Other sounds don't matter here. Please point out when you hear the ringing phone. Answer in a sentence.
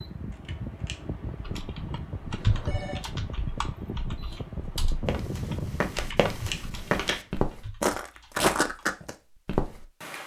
You can hear the ringing phone from 2.4 to 3.0 s.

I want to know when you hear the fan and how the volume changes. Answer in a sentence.
The fan can be heard from 0.0 to 6.8 s, at a steady volume.